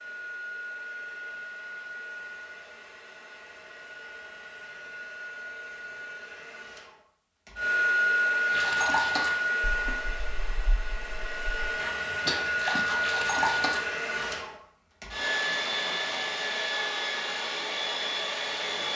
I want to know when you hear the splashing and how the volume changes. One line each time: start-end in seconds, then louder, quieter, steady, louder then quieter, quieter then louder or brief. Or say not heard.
8.4-14.3 quieter then louder.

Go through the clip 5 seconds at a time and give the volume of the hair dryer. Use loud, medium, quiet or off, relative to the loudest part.
quiet, loud, loud, loud.